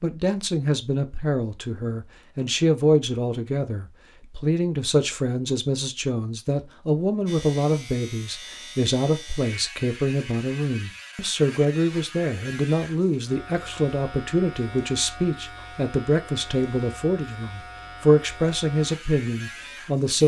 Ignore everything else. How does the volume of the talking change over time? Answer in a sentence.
The volume of the talking stays about the same.